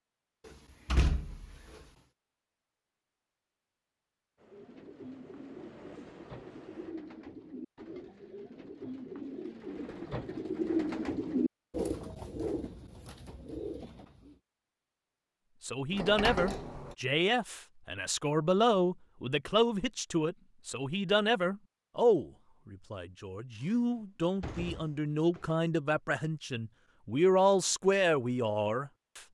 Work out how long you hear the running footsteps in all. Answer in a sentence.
You can't hear the running footsteps here.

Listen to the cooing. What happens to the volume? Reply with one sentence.
The loudness of the cooing goes up, then down.